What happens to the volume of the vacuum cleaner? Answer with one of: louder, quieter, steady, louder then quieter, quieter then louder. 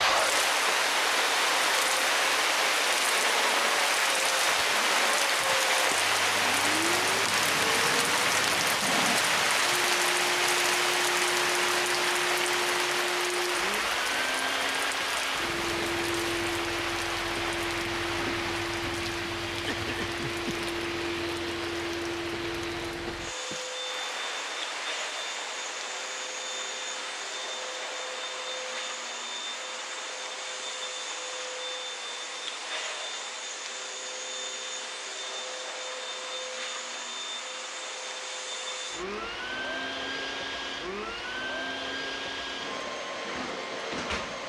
steady.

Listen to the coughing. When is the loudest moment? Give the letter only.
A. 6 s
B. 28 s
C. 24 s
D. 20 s
D.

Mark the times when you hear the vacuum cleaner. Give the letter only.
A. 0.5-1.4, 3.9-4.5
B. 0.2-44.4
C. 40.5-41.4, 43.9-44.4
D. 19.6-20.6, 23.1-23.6
B.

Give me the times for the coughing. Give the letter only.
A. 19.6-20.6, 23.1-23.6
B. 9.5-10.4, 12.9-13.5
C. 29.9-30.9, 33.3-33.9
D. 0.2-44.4
A.